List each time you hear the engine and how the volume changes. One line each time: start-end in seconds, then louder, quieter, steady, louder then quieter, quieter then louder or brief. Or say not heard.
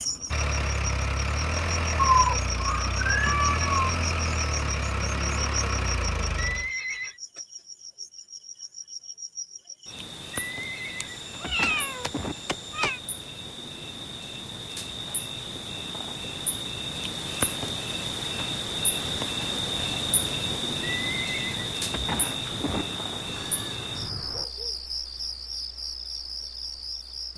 0.0-6.7 steady.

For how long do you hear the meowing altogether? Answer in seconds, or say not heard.
6 s.